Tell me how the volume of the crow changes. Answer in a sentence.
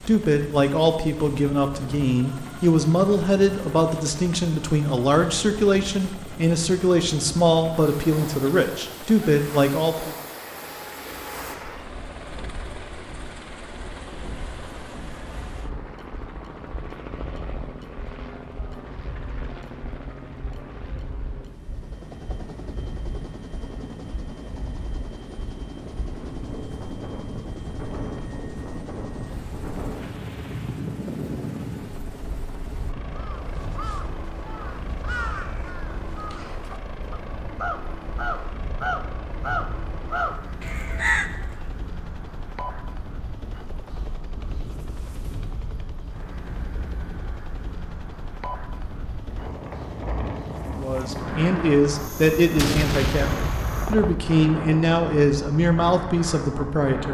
The loudness of the crow goes up.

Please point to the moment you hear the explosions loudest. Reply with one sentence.
The volume of the explosions peaks at 53 seconds.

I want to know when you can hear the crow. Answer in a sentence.
You can hear the crow from 33.1 to 41.4 s.